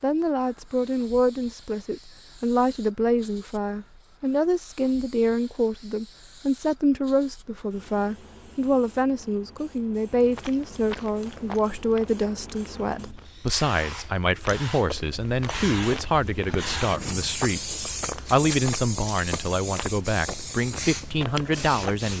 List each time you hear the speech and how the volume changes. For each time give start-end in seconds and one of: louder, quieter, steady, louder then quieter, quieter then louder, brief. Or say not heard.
0.0-22.1 steady.